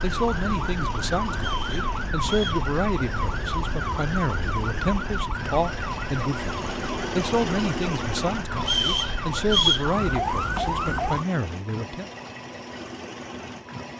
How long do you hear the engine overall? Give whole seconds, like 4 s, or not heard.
14 s.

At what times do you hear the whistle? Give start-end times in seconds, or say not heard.
1.4-2.6, 8.6-9.8.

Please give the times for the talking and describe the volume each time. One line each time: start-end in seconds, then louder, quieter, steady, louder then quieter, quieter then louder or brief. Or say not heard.
0.0-12.1 steady.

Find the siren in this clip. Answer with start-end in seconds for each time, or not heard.
0.0-11.2.